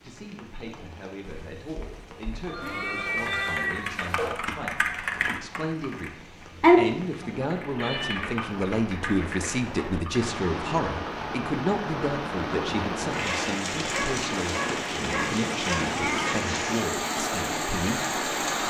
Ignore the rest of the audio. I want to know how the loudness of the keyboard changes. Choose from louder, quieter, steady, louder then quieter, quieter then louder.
louder then quieter.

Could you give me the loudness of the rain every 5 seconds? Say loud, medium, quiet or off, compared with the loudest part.
quiet, quiet, loud, loud.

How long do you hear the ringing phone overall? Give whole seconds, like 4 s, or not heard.
2 s.